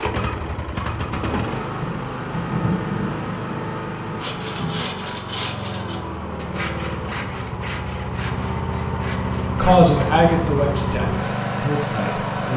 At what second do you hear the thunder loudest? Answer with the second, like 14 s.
3 s.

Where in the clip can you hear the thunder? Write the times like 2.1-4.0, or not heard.
1.8-5.0.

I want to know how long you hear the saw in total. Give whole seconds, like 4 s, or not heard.
6 s.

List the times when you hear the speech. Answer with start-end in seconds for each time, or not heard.
9.6-12.5.